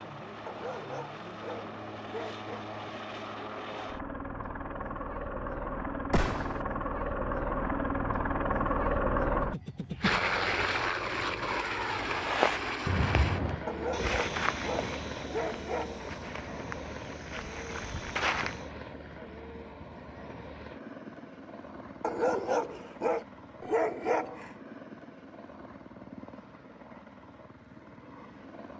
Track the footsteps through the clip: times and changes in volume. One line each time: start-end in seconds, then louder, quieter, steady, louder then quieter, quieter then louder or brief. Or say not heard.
12.1-18.7 quieter then louder.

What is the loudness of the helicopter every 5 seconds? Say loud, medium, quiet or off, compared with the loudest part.
medium, loud, loud, medium, quiet, quiet.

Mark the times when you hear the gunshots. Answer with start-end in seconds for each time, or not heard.
6.1-6.7.